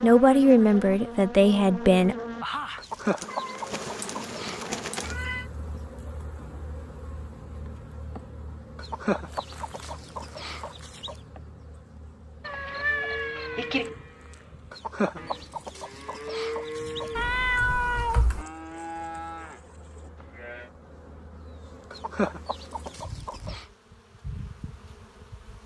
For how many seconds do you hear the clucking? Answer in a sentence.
You can hear the clucking for 9 seconds altogether.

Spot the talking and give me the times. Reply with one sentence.
The talking can be heard from 0.0 to 2.1 s.